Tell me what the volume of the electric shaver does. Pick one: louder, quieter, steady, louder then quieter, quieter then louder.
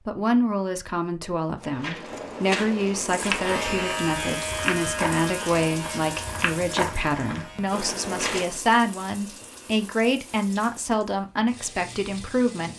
quieter.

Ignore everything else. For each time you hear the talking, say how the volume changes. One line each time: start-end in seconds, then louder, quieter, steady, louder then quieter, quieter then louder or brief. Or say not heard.
0.1-12.7 steady.